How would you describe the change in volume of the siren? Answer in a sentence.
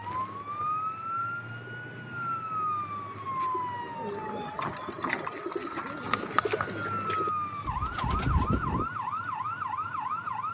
The loudness of the siren goes down, then up.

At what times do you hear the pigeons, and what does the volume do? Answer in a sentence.
You can hear the pigeons from 0.0 to 8.9 s, getting louder.